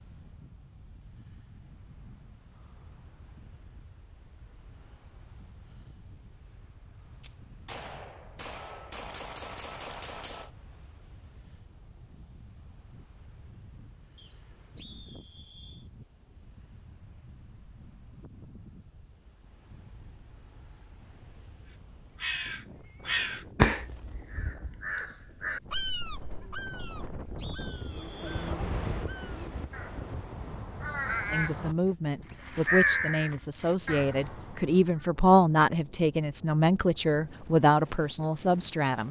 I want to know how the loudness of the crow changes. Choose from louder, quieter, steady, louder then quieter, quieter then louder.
quieter then louder.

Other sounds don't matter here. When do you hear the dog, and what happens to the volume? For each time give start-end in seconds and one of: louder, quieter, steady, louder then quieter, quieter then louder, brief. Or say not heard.
not heard.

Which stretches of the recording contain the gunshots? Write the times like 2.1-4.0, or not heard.
7.2-10.5.